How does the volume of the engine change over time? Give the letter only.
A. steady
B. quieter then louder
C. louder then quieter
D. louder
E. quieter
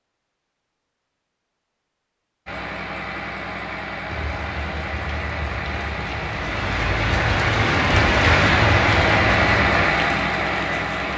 D.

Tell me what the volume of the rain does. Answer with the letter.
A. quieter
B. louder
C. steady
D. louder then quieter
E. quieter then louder
D.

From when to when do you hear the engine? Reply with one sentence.
You can hear the engine from 2.5 to 11.1 s.